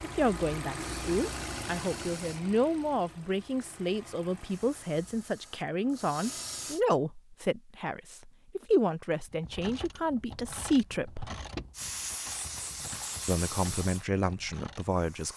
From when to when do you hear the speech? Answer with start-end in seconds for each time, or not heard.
0.0-11.3, 13.2-15.3.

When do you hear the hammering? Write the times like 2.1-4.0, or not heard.
not heard.